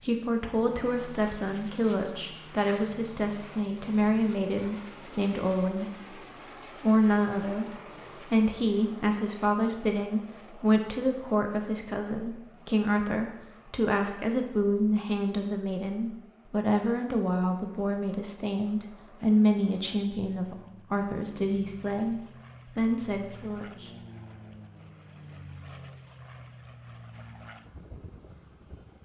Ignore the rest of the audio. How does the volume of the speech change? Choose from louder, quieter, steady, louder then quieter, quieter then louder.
steady.